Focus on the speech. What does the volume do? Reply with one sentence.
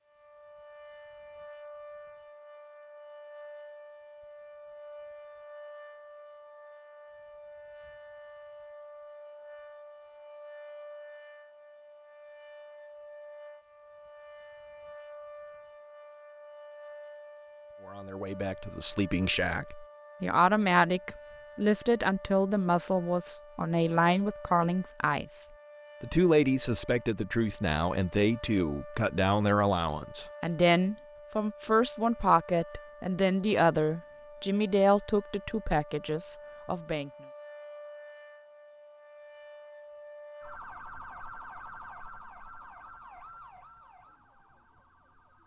The loudness of the speech stays about the same.